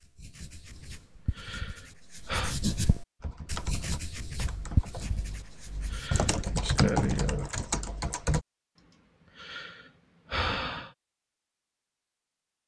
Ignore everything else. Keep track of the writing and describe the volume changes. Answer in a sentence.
The loudness of the writing goes up, then down.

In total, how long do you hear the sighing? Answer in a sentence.
The sighing can be heard for 5 seconds in total.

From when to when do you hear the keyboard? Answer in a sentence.
You can hear the keyboard from 3.2 to 8.4 s.